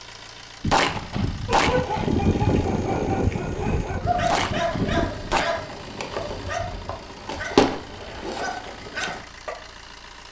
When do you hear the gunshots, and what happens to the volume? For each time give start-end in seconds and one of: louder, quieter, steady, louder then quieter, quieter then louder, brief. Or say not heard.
0.6-5.5 quieter then louder.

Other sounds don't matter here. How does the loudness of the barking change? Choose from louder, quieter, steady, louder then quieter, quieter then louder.
louder then quieter.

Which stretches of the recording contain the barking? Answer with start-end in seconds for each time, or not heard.
1.4-9.6.